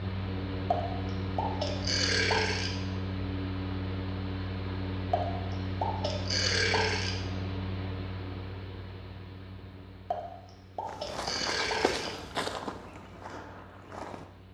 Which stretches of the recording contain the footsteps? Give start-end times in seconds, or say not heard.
10.8-14.5.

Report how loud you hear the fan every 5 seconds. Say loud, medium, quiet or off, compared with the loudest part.
loud, loud, quiet.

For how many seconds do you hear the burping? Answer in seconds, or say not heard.
6 s.